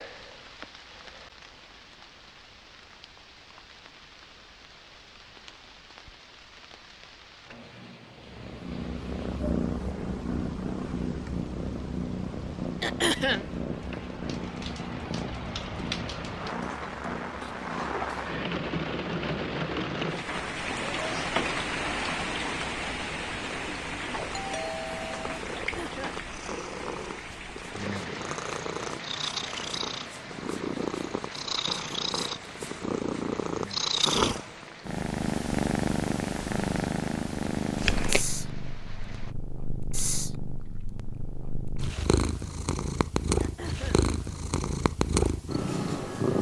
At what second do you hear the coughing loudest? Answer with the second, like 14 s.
13 s.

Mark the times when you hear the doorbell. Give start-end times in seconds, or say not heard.
24.3-25.4.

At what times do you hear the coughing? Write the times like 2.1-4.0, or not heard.
12.8-13.5, 25.6-26.2, 43.4-44.0.